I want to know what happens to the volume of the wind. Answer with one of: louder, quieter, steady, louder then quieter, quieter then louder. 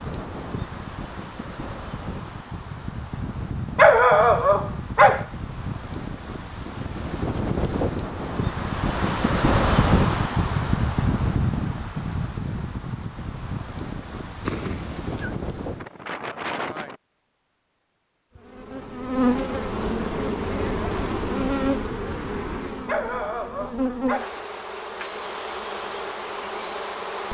louder then quieter.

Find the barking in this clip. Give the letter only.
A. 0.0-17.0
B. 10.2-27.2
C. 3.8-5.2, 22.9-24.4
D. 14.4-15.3
C.